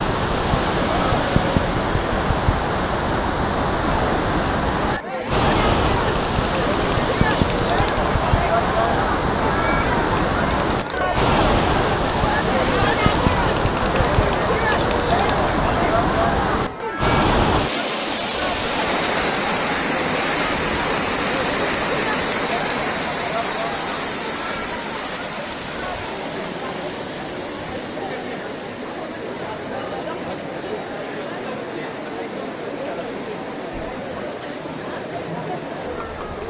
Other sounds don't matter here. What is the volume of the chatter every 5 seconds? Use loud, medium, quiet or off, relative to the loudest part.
loud, loud, loud, loud, medium, medium, medium, medium.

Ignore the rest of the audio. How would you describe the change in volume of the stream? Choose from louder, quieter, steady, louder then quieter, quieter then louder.
quieter.